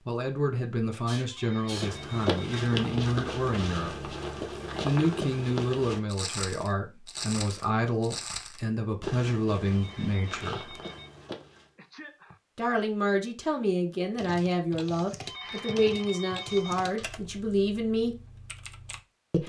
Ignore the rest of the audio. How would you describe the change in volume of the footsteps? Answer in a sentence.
The volume of the footsteps goes down.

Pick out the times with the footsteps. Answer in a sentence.
You can hear the footsteps from 1.6 to 11.7 s.